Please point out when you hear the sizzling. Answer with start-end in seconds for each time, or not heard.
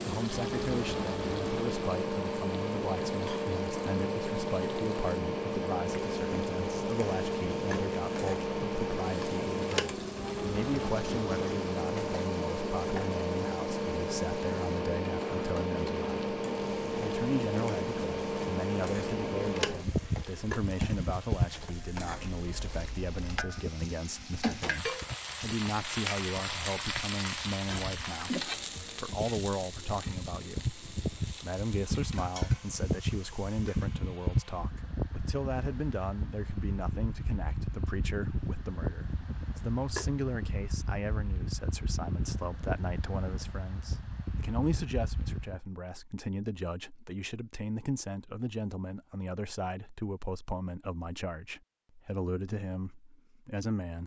0.0-34.0.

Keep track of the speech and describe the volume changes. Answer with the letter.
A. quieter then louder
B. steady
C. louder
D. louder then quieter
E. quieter
B.